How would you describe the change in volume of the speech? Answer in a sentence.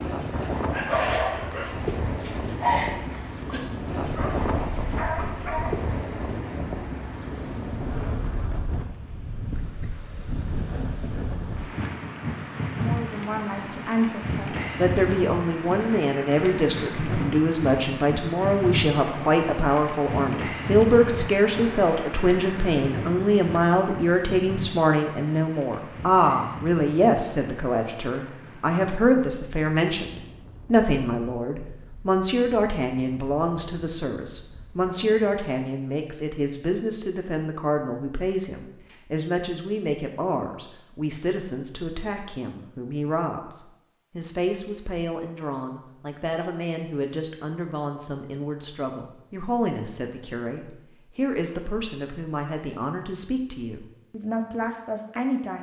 The loudness of the speech goes down.